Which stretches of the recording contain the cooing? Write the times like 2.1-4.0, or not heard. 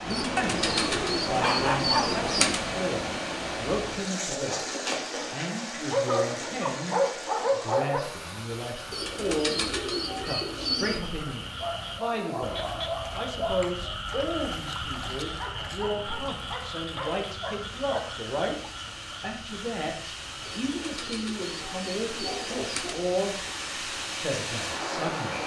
0.1-2.6, 8.9-11.0, 20.4-22.9.